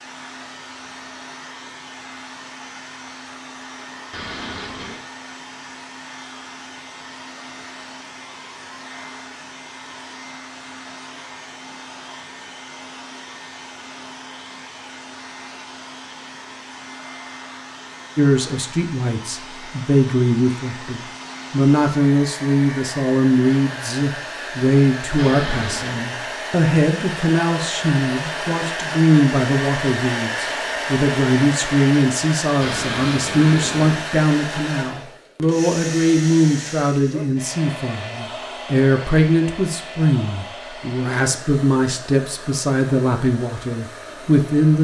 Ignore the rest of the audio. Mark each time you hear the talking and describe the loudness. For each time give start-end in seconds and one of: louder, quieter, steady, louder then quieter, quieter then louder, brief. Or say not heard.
18.1-44.7 steady.